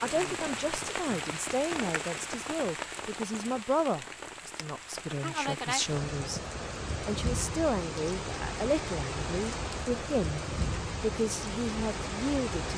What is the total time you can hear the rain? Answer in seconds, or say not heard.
13 s.